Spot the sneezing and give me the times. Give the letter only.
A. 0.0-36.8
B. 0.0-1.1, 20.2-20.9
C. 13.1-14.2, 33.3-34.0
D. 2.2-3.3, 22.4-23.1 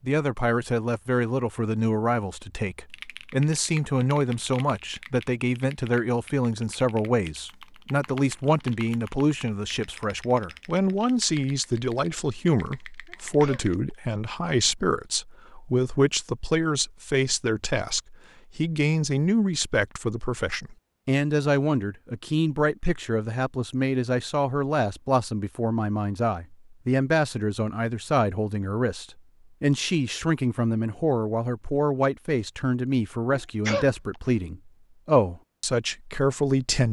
C.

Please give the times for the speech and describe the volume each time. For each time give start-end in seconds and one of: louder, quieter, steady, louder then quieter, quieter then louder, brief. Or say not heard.
0.0-36.8 steady.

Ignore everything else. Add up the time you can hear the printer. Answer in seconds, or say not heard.
not heard.